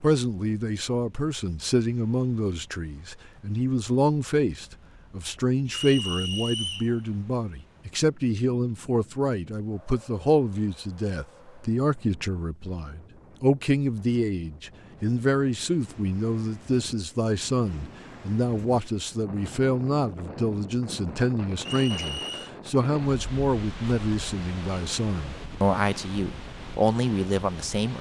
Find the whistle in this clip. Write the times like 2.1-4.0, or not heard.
5.7-6.9, 21.6-22.5.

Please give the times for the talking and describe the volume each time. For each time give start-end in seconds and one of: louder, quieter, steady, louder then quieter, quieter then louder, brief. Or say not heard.
0.0-27.9 steady.